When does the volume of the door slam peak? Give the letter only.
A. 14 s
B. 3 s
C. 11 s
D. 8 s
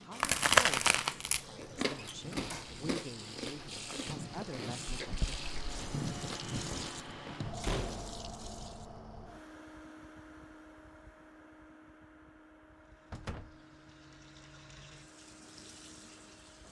D.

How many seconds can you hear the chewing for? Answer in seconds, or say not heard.
7 s.